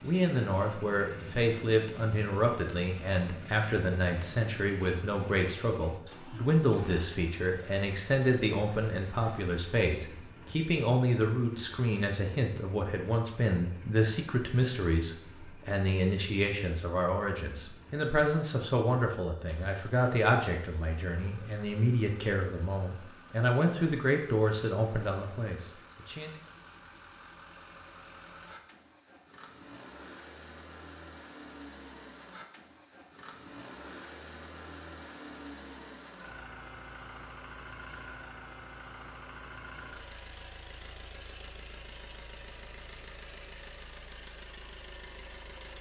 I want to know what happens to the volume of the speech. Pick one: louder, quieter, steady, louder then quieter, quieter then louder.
steady.